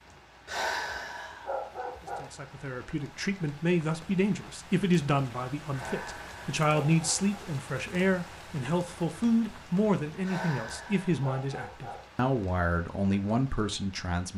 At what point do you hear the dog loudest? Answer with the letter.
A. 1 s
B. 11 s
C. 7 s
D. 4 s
A.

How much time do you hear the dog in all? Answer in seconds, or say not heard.
5 s.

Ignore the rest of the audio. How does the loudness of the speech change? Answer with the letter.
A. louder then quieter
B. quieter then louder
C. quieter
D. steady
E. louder
D.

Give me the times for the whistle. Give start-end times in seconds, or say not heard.
not heard.